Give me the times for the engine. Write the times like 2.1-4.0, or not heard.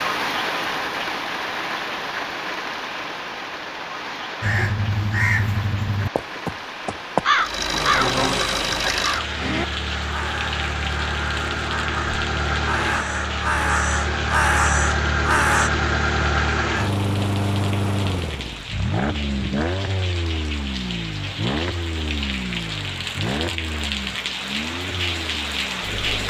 7.3-26.2.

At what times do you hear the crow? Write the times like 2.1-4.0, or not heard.
4.4-15.7.